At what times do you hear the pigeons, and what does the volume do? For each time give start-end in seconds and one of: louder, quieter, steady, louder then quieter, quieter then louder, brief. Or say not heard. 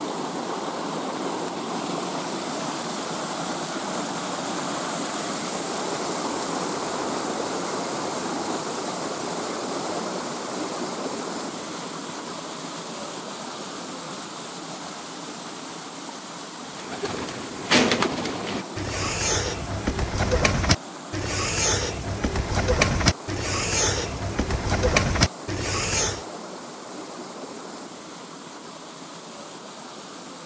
16.7-26.2 steady.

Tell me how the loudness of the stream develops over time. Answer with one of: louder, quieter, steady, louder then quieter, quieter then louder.
quieter.